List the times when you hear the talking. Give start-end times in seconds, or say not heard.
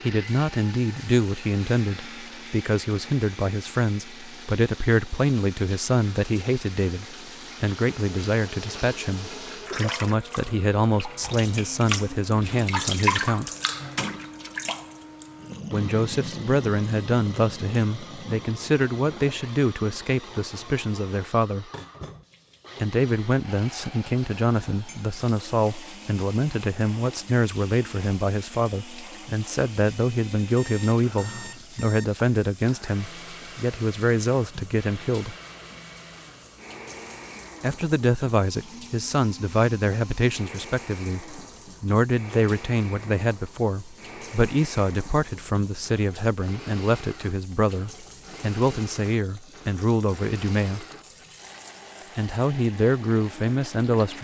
0.0-13.5, 15.7-21.6, 22.8-35.4, 37.6-50.9, 52.1-54.1.